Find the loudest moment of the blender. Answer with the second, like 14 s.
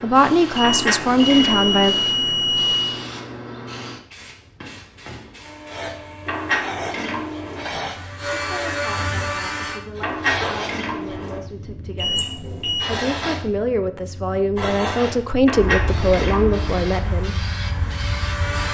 9 s.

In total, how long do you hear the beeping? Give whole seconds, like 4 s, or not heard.
3 s.